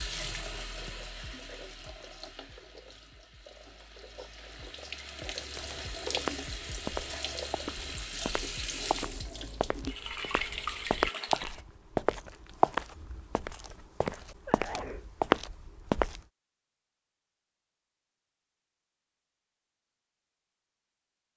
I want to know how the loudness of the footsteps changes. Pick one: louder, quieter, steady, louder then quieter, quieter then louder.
louder.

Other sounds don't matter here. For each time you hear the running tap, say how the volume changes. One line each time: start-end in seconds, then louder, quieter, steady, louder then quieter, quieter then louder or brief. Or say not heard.
0.0-11.6 quieter then louder.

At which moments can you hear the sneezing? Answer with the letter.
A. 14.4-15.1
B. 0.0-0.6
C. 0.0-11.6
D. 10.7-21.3
A.